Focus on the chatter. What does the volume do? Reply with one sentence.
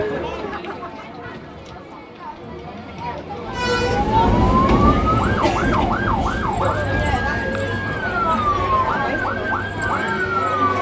The loudness of the chatter goes up.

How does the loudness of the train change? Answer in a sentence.
The loudness of the train goes down.